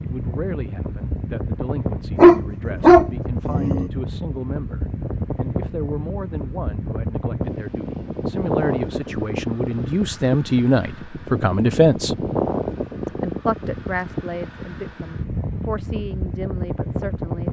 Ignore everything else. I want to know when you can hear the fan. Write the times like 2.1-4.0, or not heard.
0.0-17.4.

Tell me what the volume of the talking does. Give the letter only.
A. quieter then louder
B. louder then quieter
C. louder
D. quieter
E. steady
B.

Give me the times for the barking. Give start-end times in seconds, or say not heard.
2.1-3.9.